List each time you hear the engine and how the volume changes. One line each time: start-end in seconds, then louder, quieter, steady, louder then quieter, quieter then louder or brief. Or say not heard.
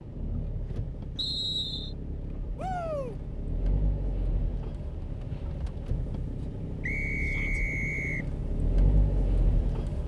0.0-10.0 louder.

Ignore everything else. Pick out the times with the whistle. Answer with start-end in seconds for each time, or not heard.
1.1-1.9, 6.8-8.3.